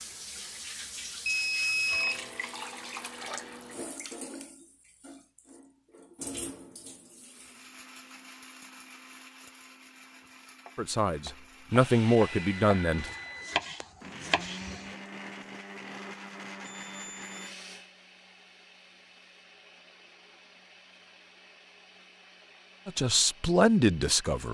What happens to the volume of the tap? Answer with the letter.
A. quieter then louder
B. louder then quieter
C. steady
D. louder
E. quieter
A.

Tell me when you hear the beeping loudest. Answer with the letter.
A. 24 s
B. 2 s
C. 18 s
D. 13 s
B.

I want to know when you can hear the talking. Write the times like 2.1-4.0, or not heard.
10.8-13.1, 22.9-24.4.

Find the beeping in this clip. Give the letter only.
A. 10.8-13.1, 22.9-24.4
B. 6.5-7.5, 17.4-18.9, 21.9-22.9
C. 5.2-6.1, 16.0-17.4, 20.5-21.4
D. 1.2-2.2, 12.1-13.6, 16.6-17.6
D.